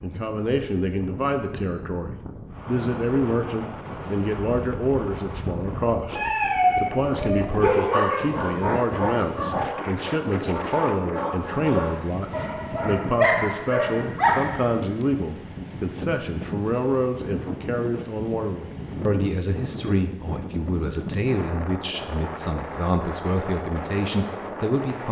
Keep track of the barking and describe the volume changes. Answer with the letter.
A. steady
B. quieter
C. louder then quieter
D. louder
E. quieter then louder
E.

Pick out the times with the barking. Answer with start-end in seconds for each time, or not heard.
6.2-14.7.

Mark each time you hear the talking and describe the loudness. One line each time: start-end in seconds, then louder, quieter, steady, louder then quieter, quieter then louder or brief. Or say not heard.
0.0-25.0 steady.